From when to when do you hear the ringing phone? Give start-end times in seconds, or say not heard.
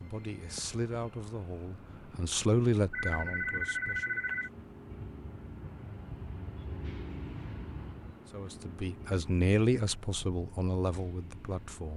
2.9-4.5.